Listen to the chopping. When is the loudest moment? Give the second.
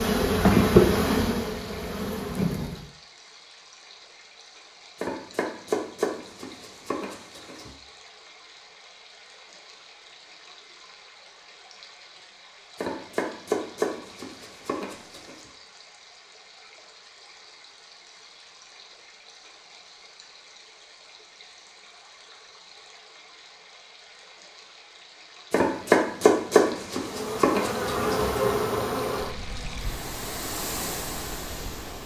26 s.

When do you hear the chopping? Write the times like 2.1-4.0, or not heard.
5.0-7.8, 12.8-15.4, 25.5-28.4.